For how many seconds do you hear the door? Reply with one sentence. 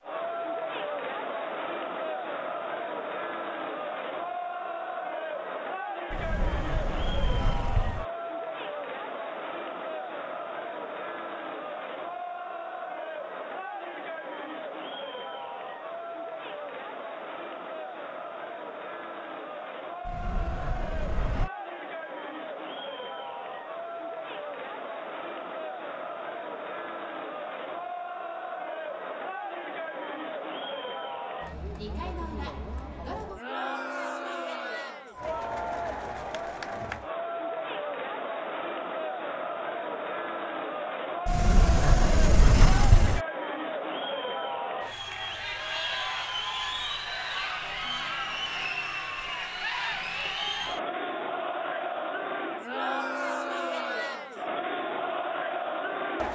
The door can be heard for 5 seconds in total.